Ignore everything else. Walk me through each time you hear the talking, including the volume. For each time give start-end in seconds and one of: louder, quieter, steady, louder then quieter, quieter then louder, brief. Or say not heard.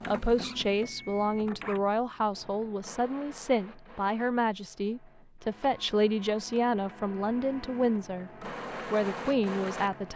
0.1-10.1 steady.